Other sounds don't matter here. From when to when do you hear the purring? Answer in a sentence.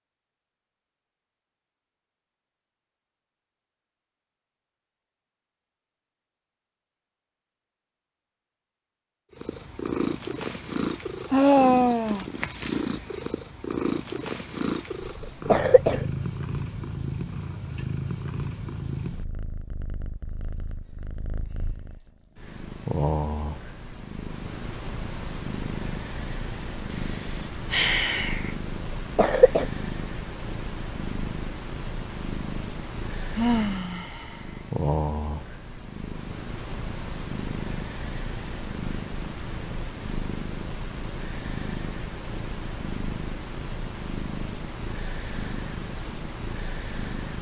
You can hear the purring from 9.3 to 47.3 s.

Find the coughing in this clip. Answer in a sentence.
You can hear the coughing from 15.2 to 16.1 s and from 28.9 to 29.6 s.